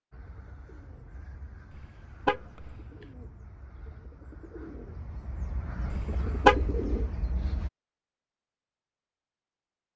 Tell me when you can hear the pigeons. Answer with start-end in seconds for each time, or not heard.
0.1-7.7.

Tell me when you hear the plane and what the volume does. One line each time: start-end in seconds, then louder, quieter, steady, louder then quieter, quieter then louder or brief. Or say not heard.
not heard.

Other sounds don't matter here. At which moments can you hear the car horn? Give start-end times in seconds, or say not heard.
1.8-2.8, 5.9-6.6.